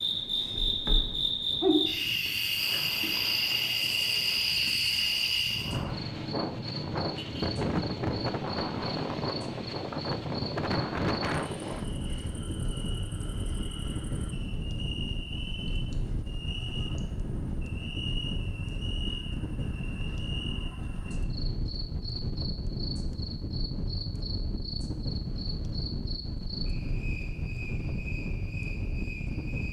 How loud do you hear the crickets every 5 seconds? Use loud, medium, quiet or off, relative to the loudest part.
loud, medium, quiet, quiet, quiet, quiet.